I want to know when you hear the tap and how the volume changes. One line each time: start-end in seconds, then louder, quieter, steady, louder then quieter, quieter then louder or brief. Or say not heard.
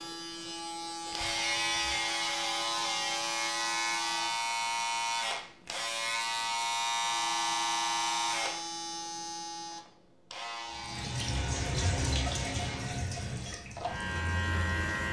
10.7-15.0 quieter.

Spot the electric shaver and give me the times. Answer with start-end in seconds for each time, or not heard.
0.0-15.0.